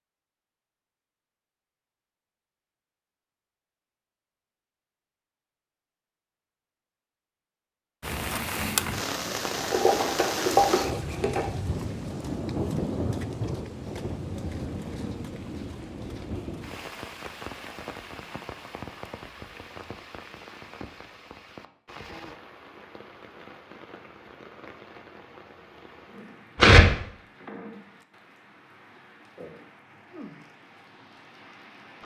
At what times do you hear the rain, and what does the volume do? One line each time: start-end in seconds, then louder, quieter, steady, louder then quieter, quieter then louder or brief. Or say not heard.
8.0-32.0 quieter.